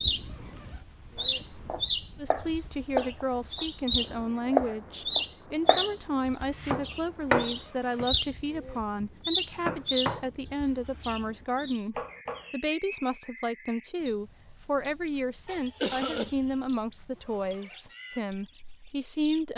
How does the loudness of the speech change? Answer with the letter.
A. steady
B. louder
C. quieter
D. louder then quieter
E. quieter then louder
A.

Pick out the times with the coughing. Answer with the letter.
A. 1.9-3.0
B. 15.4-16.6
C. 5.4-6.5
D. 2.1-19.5
B.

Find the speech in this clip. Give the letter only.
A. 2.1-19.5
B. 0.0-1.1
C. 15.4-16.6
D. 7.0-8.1
A.